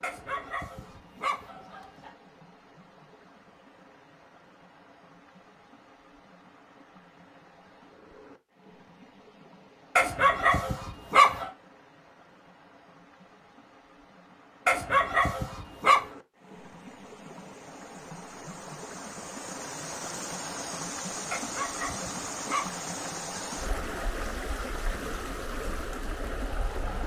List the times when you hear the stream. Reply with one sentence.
You can hear the stream from 0.0 to 27.0 s.